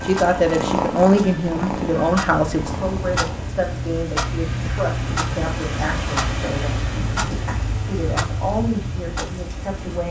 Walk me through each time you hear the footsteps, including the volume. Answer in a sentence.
You can't hear the footsteps here.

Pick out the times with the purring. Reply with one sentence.
You can hear the purring from 0.0 to 3.5 s.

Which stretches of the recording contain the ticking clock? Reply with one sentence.
You can hear the ticking clock from 0.0 to 10.0 s.